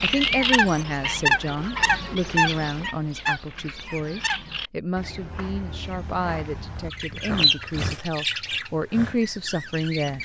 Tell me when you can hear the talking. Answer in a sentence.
You can hear the talking from 0.0 to 10.1 s.